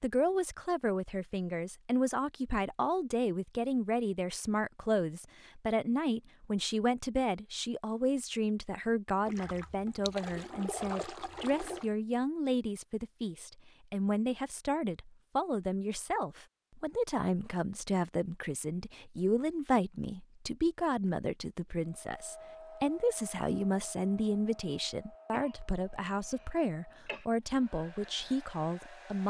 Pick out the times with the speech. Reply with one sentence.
The speech can be heard from 0.0 to 29.2 s.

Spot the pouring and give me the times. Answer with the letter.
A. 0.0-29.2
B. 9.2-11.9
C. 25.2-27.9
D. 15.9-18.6
B.